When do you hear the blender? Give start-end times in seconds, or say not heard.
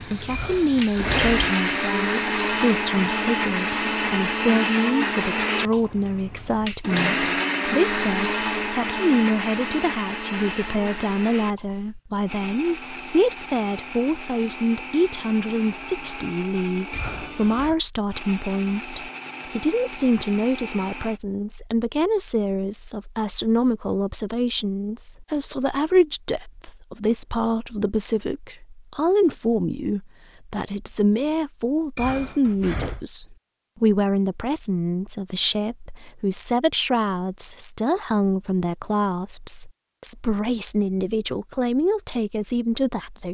0.0-21.2.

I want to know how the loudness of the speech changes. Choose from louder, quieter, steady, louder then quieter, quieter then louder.
steady.